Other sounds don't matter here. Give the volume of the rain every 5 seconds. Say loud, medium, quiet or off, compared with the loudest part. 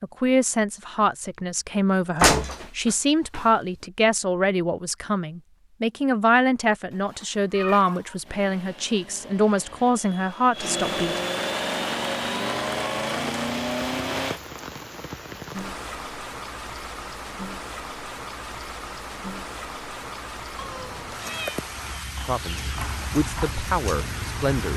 off, off, loud, loud, loud.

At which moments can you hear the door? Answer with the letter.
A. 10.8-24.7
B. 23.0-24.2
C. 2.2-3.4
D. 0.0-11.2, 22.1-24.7
C.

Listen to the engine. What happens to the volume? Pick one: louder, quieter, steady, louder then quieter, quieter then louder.
louder.